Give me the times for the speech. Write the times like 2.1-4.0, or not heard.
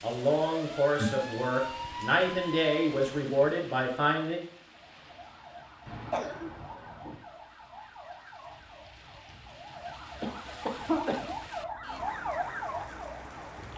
0.0-4.4.